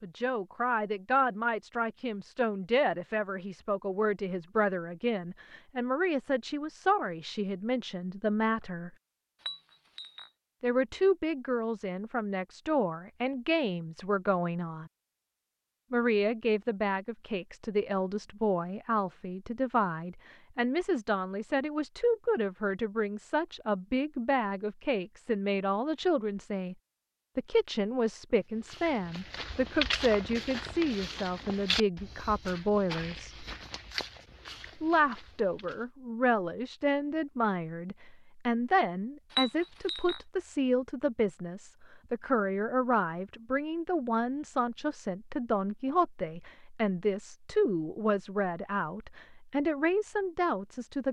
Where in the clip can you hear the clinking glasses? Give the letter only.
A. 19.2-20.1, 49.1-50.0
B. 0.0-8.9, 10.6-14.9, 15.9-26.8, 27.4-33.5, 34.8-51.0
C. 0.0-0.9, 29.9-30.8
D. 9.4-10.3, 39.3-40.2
D.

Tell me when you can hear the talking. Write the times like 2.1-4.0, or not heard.
0.0-8.9, 10.6-14.9, 15.9-26.8, 27.4-33.5, 34.8-51.0.